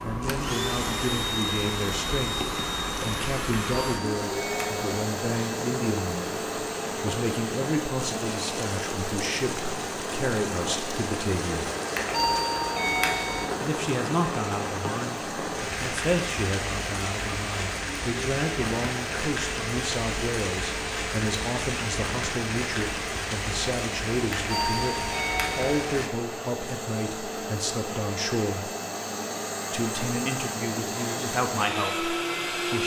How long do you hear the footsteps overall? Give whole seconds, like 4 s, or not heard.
not heard.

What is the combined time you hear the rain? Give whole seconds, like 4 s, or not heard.
26 s.